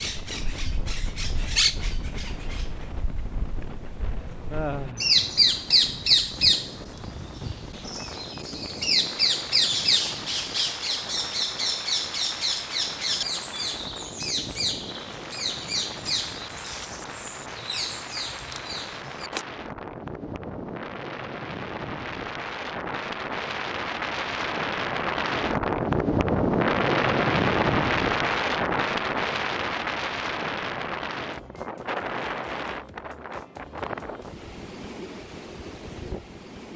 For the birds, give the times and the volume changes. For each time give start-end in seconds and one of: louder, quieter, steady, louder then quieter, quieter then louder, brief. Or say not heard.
0.0-19.4 louder then quieter.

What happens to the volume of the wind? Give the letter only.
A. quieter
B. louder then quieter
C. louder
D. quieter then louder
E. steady
B.